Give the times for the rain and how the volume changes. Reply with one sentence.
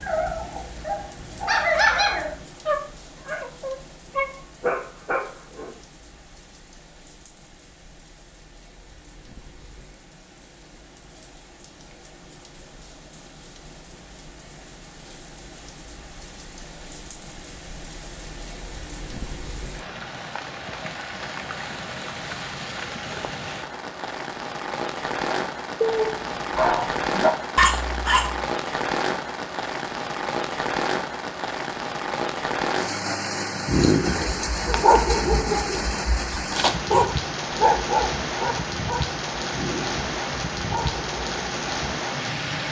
The rain can be heard from 0.0 to 42.6 s, getting louder.